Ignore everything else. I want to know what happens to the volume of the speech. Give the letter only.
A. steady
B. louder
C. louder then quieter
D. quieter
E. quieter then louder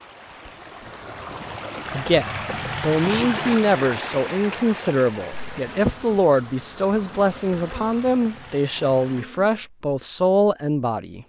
A.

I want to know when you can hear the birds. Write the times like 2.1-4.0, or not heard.
not heard.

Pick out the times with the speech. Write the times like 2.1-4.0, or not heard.
1.9-11.2.